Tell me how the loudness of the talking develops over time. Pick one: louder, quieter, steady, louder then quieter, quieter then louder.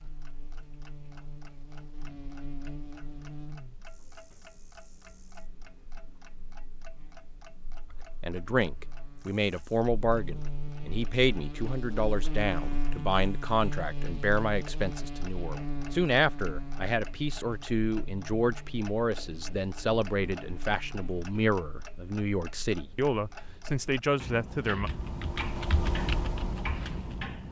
steady.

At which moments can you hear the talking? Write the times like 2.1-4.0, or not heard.
8.2-24.9.